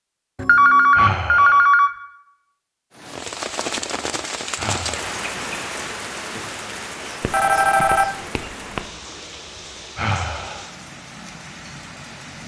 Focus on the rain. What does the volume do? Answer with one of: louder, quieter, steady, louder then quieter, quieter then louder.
quieter.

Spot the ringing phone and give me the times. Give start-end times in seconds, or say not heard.
0.3-1.9, 7.2-8.8.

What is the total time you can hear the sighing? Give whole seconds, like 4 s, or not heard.
2 s.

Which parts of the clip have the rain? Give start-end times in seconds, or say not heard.
2.9-12.4.